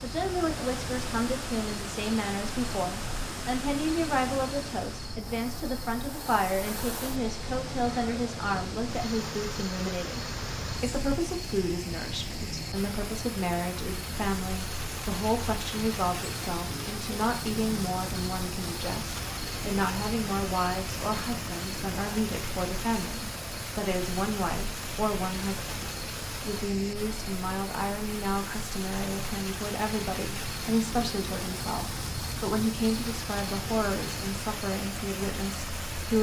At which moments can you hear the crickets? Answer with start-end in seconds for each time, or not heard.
0.0-36.1.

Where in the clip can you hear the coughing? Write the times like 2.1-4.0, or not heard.
not heard.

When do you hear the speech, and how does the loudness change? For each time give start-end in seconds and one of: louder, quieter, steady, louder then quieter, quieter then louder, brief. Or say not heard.
0.0-36.1 steady.